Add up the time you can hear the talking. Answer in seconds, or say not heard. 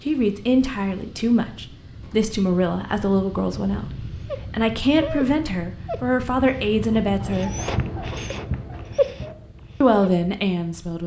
9 s.